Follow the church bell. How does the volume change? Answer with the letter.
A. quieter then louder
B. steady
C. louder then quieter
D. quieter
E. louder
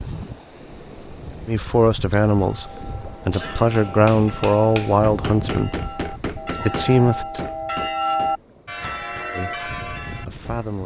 C.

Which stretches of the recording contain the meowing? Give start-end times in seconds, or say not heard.
not heard.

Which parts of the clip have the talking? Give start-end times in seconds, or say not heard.
1.4-2.6, 3.2-5.7, 6.7-7.4, 9.3-10.8.